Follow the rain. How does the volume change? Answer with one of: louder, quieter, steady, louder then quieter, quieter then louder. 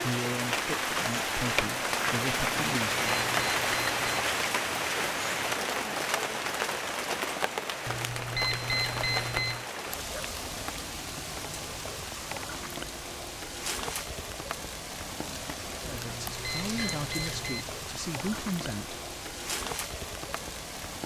quieter.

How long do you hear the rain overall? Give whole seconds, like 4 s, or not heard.
21 s.